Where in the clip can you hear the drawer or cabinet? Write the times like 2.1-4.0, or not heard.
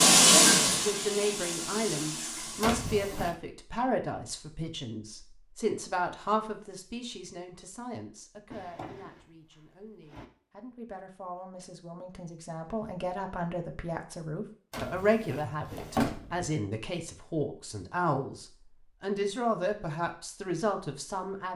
2.6-3.4, 8.5-10.2, 14.7-16.5.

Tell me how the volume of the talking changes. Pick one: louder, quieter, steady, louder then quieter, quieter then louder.
quieter then louder.